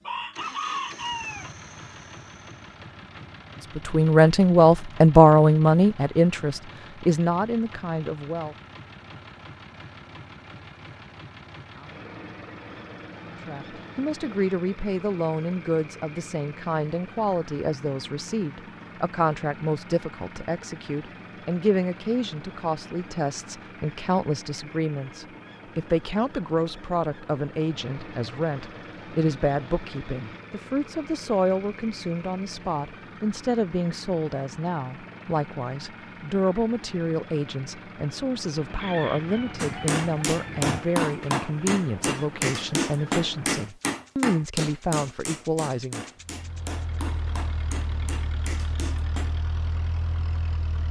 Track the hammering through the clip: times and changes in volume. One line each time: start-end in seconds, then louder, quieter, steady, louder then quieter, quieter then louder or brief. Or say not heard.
39.5-49.4 quieter.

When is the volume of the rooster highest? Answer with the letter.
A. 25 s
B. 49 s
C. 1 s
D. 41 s
C.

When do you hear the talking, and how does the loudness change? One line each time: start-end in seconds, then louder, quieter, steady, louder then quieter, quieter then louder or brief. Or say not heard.
3.8-8.6 quieter
13.4-46.0 steady.